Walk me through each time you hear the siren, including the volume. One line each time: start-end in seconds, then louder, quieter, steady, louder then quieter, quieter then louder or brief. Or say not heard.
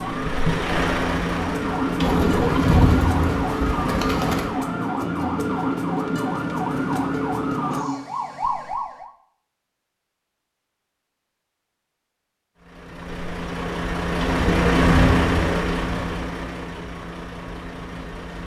0.0-9.1 steady.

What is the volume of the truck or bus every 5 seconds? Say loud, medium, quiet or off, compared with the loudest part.
loud, off, loud, loud.